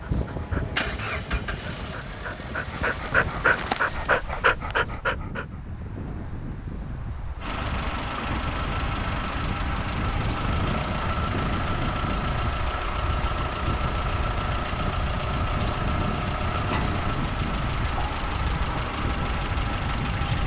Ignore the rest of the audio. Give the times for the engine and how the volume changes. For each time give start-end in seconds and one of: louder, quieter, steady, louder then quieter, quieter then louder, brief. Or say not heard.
0.0-4.2 quieter
7.3-20.4 steady.